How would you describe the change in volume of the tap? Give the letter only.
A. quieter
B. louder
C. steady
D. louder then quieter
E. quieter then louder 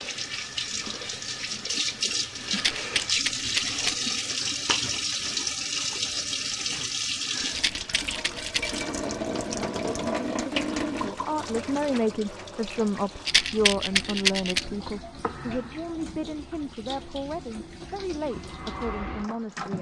A.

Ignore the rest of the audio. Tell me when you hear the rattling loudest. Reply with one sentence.
The volume of the rattling peaks at 14 seconds.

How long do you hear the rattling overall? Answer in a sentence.
The rattling can be heard for 4 seconds in total.